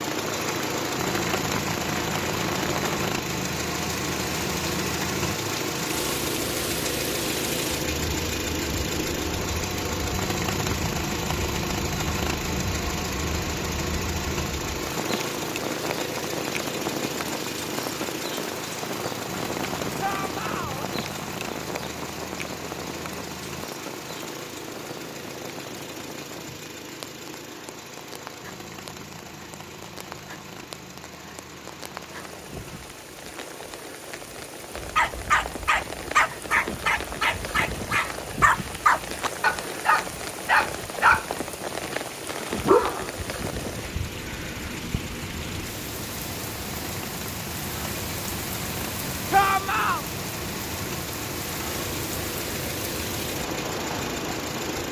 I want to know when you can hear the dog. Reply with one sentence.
The dog can be heard from 34.8 to 43.1 s.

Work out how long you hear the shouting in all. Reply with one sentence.
You can hear the shouting for 2 seconds altogether.